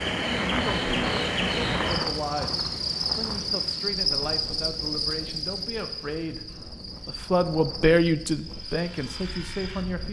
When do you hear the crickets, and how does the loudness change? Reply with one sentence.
The crickets can be heard from 0.0 to 10.0 s, getting quieter.